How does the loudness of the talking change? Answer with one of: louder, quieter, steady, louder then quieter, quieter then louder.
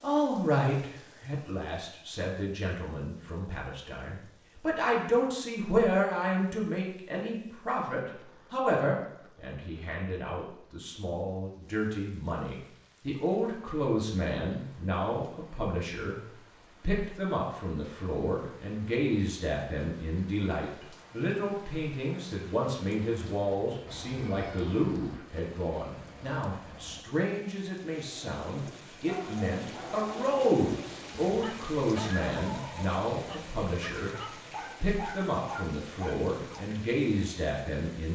steady.